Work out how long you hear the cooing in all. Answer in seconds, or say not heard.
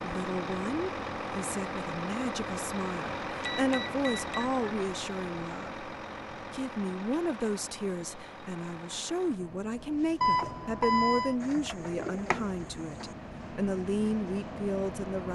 2 s.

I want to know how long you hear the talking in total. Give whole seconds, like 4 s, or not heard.
15 s.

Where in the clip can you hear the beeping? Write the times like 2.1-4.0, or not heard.
3.4-4.5, 10.2-11.3.